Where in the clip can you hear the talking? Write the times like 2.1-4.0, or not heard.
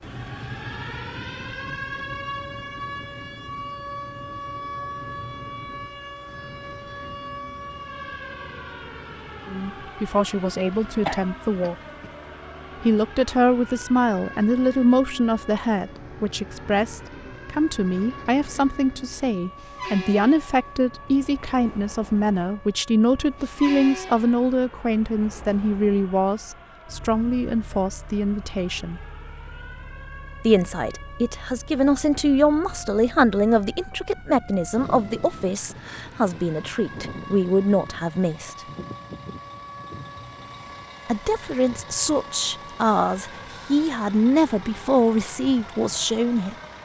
9.4-11.8, 12.8-29.0, 30.4-38.5, 41.0-46.5.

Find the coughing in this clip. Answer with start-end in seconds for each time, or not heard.
11.1-12.1.